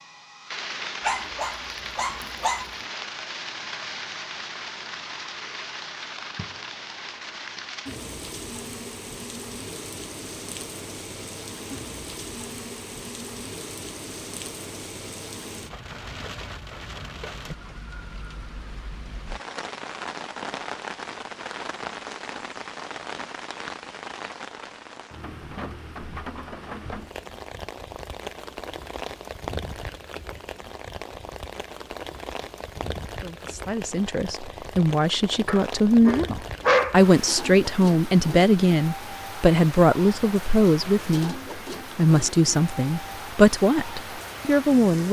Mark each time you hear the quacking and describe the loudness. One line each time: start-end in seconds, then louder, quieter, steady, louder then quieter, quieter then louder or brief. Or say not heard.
not heard.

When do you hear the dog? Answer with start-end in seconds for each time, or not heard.
1.0-2.7, 35.5-37.0.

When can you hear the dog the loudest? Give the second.
37 s.